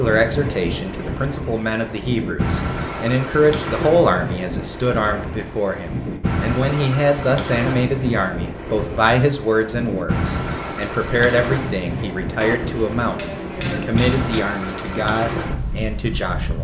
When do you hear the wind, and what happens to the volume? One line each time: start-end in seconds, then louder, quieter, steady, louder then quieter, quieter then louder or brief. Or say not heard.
0.0-16.5 steady.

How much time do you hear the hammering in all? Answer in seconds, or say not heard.
2 s.